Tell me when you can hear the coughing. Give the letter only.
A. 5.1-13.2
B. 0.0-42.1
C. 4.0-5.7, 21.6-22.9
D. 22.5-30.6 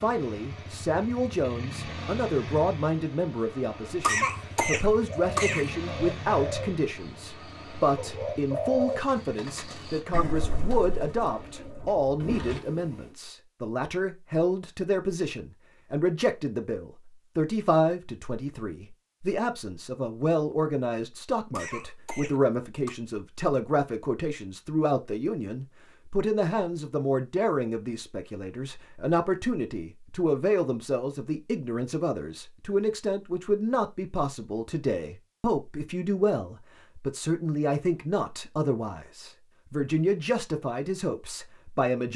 C.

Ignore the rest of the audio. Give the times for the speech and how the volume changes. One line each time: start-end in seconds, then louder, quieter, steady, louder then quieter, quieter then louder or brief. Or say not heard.
0.0-42.1 steady.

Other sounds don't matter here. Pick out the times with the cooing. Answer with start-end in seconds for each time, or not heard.
5.1-13.2.